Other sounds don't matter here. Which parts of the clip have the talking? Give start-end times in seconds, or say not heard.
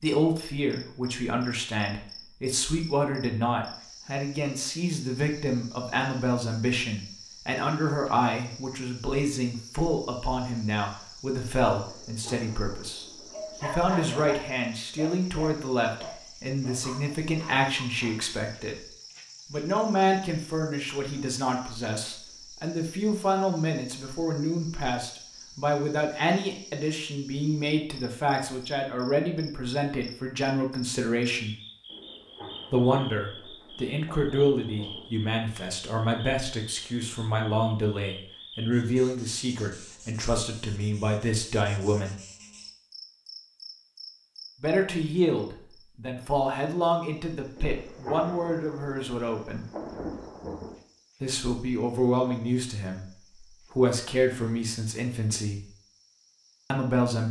0.0-18.9, 19.5-31.6, 32.7-42.1, 44.6-49.6, 51.2-55.6, 56.7-57.2.